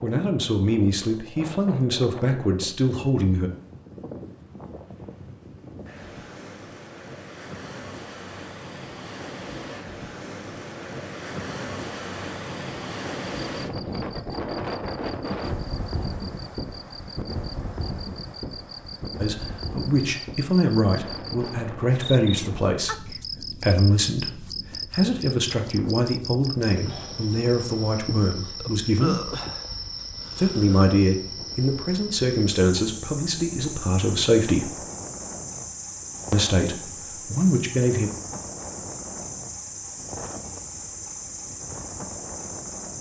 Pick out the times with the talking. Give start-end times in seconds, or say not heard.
0.0-3.5, 19.1-29.2, 30.4-34.8, 36.3-38.1.